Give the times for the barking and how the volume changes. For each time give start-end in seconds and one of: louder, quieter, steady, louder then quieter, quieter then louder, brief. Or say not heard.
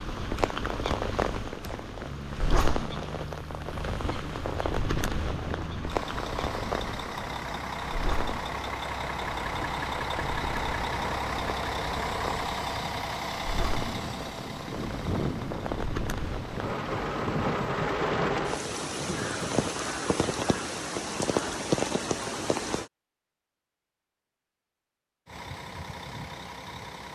not heard.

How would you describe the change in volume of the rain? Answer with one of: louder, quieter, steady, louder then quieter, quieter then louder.
quieter then louder.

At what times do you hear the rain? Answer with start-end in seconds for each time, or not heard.
0.0-22.9.